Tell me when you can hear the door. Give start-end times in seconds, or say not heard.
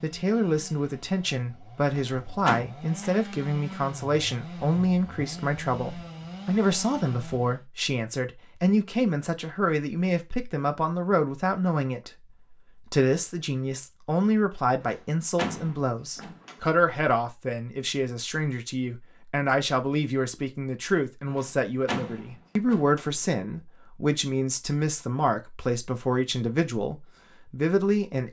1.9-2.6, 14.8-16.6, 21.3-23.1.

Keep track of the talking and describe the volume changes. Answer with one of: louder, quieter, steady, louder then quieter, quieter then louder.
steady.